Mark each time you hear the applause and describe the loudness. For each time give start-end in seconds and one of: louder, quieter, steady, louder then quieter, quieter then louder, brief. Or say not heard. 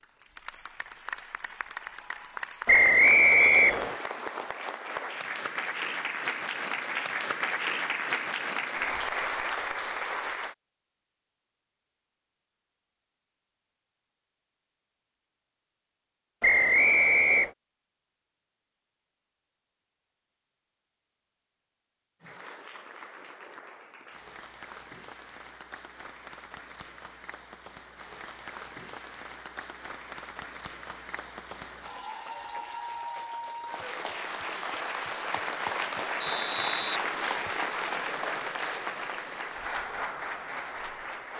0.0-10.6 louder
22.2-41.3 louder.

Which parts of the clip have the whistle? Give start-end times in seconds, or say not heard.
2.6-4.0, 16.4-17.5, 36.2-37.5.